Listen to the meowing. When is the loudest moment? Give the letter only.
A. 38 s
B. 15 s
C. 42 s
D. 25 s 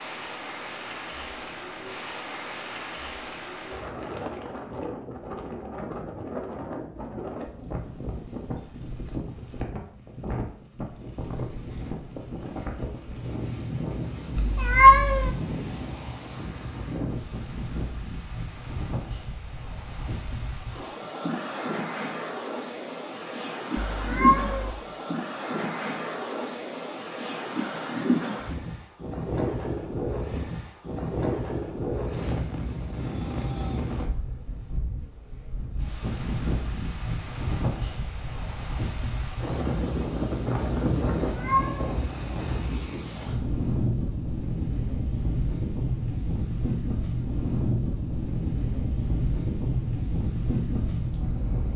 B.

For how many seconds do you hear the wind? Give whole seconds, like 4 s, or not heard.
52 s.